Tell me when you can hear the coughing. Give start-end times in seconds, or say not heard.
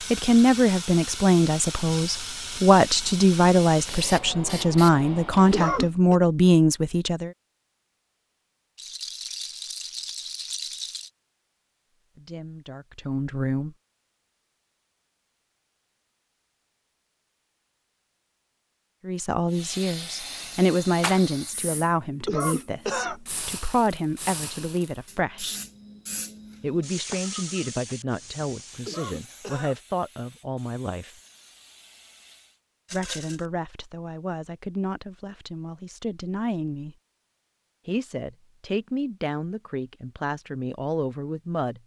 5.5-6.2, 22.2-23.2, 28.9-29.8.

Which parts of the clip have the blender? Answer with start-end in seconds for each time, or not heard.
not heard.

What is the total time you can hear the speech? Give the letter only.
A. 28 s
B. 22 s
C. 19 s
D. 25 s
A.